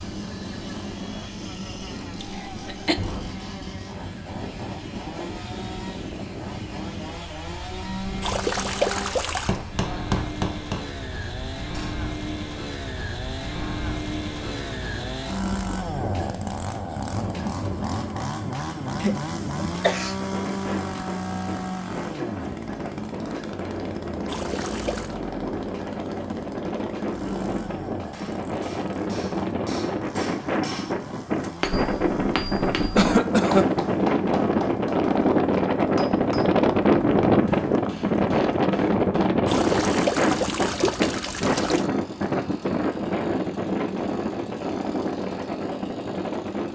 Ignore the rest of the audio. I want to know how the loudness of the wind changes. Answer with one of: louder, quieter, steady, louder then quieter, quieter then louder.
louder.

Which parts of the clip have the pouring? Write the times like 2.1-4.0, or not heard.
8.2-9.6, 24.2-25.1, 39.5-41.9.